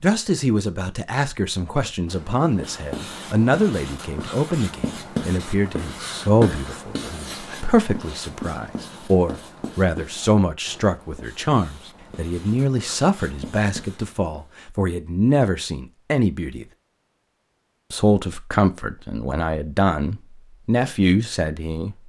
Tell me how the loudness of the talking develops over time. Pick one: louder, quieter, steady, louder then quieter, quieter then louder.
steady.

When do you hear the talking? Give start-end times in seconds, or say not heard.
0.0-16.6, 17.9-22.0.